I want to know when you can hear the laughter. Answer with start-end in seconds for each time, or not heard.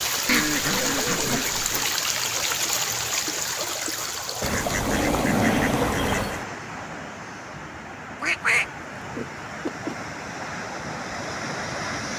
not heard.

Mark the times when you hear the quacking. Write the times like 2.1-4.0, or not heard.
0.2-1.9, 4.4-6.5, 8.2-9.9.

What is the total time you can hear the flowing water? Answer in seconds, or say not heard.
12 s.